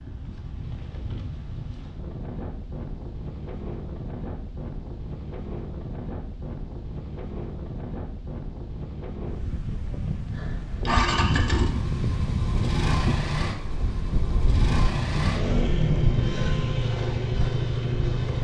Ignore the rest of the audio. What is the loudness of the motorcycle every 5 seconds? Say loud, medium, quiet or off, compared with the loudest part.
off, off, loud, loud.